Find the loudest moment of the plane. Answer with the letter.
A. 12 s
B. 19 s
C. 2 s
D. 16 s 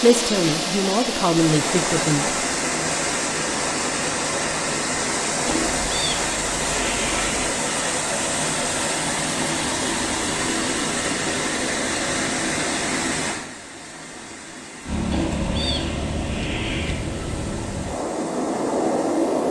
B.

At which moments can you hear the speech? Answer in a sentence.
The speech can be heard from 0.0 to 2.4 s.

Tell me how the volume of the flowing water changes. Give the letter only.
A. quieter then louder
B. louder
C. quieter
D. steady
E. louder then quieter
C.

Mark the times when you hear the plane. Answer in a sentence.
You can hear the plane from 14.8 to 19.4 s.